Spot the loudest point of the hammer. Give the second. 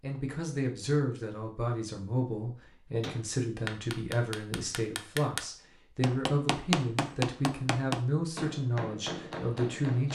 7 s.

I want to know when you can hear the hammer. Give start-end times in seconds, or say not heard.
3.0-10.1.